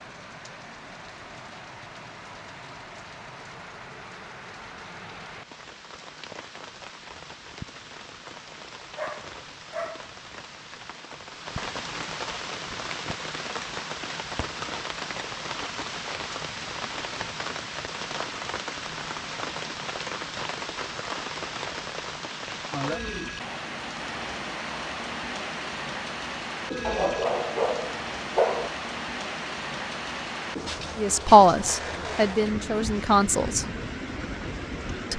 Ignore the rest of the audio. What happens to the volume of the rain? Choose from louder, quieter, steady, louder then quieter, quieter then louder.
louder.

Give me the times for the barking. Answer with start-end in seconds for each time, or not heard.
8.9-10.6, 26.8-28.7.